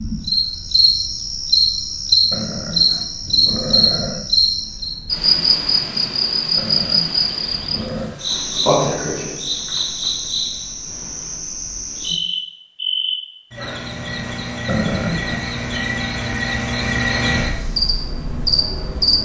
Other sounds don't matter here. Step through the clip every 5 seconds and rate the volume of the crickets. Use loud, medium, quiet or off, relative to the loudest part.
loud, loud, medium, loud.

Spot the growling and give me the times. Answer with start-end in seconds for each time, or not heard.
2.3-4.3, 6.5-8.2, 14.7-15.5.